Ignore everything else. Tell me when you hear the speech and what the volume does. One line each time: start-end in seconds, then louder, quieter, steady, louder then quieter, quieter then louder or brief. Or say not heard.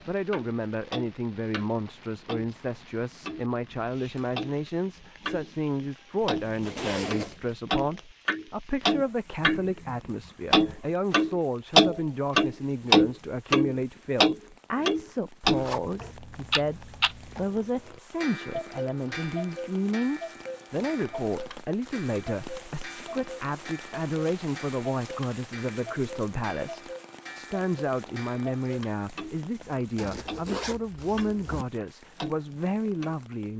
0.1-33.5 steady.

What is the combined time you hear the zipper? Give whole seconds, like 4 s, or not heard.
5 s.